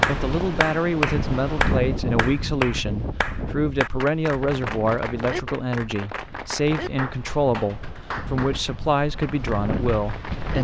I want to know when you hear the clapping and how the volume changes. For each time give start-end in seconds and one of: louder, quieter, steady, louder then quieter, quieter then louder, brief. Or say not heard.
0.0-10.6 quieter.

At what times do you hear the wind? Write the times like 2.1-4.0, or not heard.
0.0-10.6.